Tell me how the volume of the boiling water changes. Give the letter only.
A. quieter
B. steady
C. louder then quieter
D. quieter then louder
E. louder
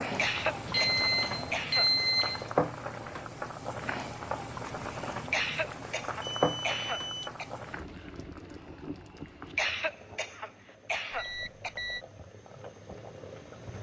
A.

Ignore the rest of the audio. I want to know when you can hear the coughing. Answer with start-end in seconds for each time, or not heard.
0.1-2.3, 5.2-7.5, 9.4-11.8.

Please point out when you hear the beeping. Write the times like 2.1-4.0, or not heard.
0.1-2.5, 6.2-7.3, 11.1-12.1.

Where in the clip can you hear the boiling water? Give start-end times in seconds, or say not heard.
0.0-13.7.